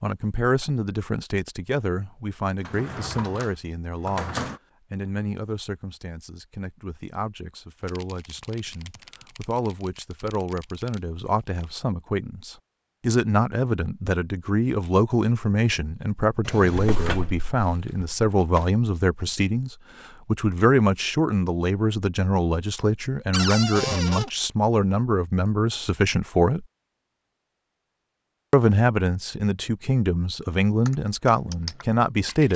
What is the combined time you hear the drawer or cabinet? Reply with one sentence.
The drawer or cabinet can be heard for 5 seconds in total.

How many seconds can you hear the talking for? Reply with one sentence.
The talking can be heard for 31 seconds in total.